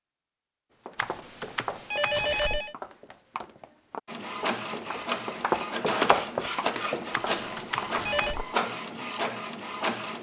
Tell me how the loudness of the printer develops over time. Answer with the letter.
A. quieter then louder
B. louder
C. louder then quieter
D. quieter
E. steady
E.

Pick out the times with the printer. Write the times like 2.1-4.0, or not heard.
4.0-10.1.